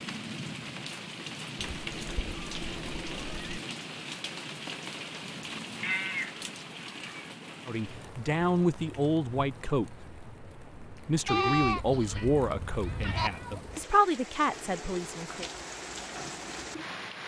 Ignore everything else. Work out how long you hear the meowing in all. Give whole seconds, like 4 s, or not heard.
5 s.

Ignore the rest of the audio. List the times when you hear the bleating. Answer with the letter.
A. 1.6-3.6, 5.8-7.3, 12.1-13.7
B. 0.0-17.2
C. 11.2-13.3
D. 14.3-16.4
C.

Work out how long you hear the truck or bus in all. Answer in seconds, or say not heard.
not heard.